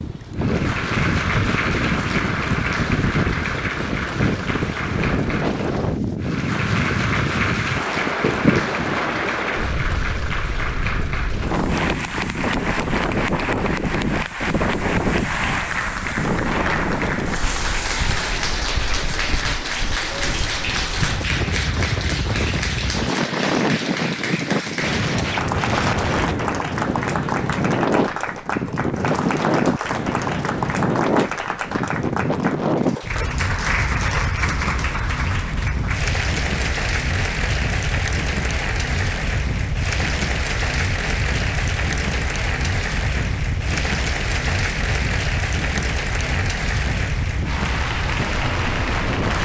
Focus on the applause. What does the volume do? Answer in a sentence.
The loudness of the applause stays about the same.